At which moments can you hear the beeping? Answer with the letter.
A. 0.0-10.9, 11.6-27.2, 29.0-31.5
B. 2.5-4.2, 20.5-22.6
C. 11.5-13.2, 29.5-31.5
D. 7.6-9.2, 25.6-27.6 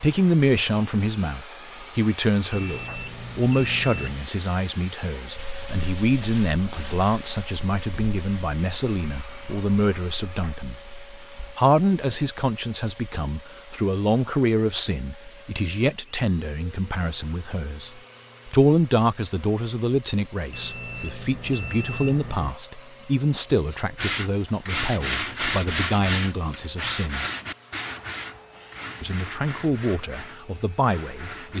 B.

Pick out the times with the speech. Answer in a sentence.
The speech can be heard from 0.0 to 10.9 s, from 11.6 to 27.2 s and from 29.0 to 31.5 s.